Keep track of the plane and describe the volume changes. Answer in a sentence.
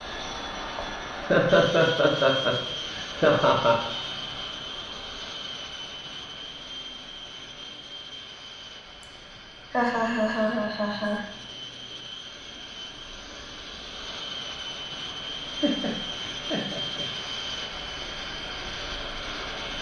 The loudness of the plane goes down, then up.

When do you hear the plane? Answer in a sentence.
You can hear the plane from 0.0 to 19.7 s.